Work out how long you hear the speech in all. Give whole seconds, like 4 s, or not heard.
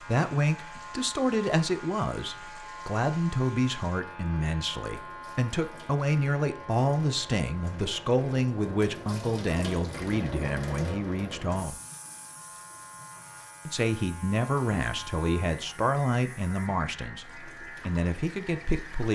17 s.